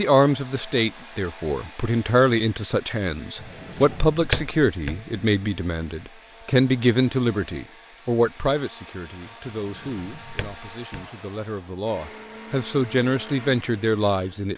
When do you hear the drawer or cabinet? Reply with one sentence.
You can hear the drawer or cabinet from 3.4 to 5.0 s and from 9.6 to 11.1 s.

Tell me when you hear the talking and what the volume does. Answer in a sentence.
You can hear the talking from 0.0 to 14.5 s, getting quieter then louder.